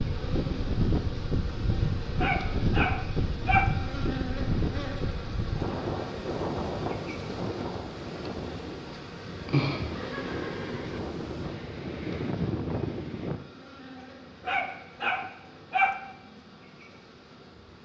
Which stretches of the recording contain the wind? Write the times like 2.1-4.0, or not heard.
0.0-13.4.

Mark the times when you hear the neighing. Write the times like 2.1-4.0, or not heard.
9.8-11.0.